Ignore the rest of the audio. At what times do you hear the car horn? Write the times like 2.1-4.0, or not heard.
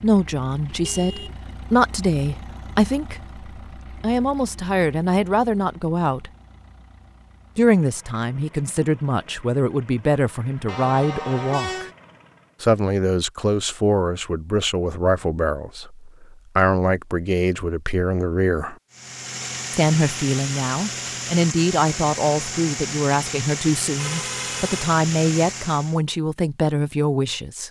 0.8-1.4, 10.7-11.9, 23.9-24.9.